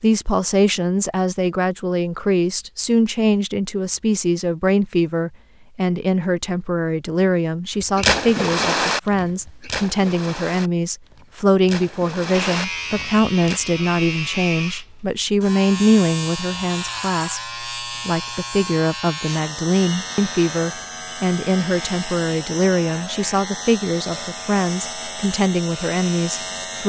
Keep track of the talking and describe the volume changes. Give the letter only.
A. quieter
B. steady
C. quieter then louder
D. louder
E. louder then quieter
B.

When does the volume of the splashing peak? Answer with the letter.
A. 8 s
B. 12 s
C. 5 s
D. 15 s
A.